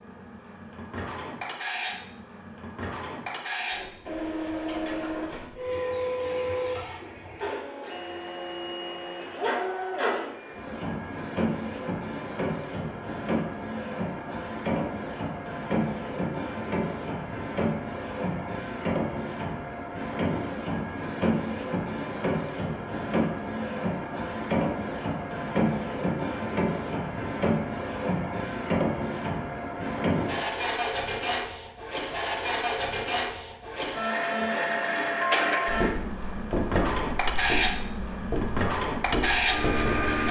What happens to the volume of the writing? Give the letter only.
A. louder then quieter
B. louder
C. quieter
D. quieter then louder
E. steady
D.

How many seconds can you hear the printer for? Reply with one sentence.
The printer can be heard for 40 seconds in total.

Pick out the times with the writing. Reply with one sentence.
You can hear the writing from 35.6 to 40.2 s.